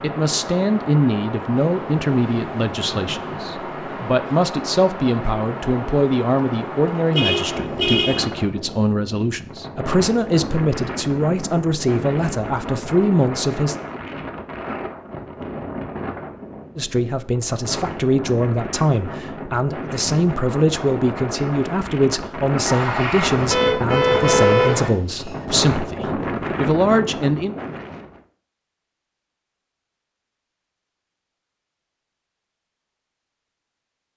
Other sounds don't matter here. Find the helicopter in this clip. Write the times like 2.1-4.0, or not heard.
22.6-24.9.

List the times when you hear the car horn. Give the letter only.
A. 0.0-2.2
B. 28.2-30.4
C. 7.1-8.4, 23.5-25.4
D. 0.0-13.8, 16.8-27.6
C.